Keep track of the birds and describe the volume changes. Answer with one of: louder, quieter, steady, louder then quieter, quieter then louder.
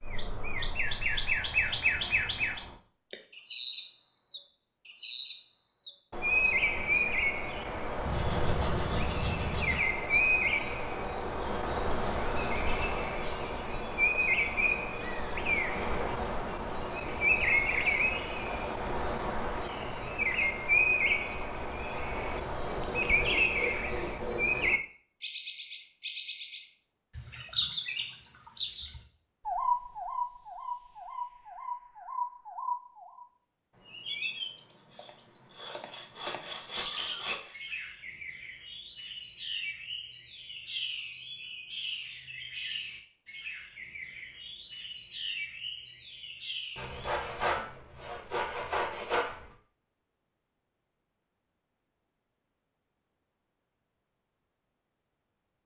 quieter.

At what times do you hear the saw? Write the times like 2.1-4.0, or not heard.
8.1-9.8, 22.6-24.6, 34.9-37.5, 46.8-49.5.